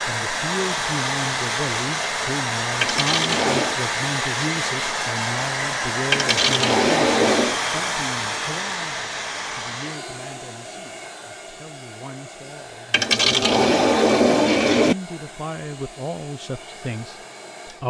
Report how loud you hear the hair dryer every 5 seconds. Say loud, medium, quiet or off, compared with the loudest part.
loud, loud, quiet, quiet.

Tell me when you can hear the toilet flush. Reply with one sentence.
The toilet flush can be heard from 2.8 to 3.8 s, from 6.1 to 7.6 s and from 12.9 to 14.9 s.